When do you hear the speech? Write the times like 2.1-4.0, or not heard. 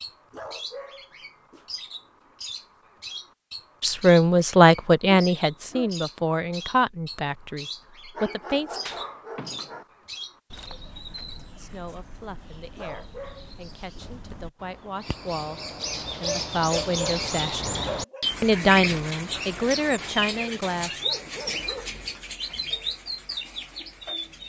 3.8-8.8, 11.6-15.6, 16.2-17.8, 18.4-21.0.